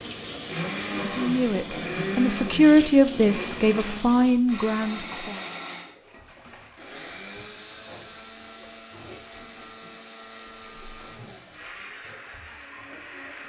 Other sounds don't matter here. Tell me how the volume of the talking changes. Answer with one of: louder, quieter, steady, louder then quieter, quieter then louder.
louder then quieter.